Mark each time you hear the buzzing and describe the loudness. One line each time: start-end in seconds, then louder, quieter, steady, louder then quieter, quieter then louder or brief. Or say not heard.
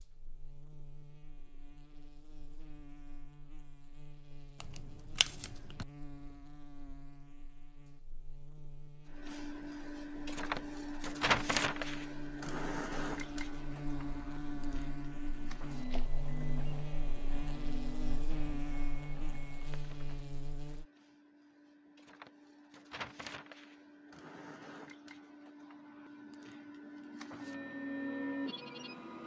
0.0-20.9 louder.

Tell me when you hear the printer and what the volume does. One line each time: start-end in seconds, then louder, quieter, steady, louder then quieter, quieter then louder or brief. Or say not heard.
9.1-29.2 quieter then louder.